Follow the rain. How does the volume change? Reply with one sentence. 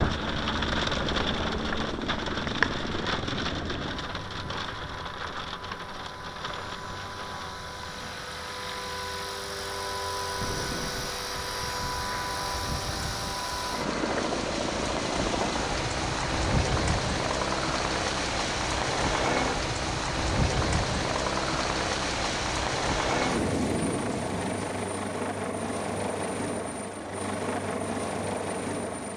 The loudness of the rain goes down, then up.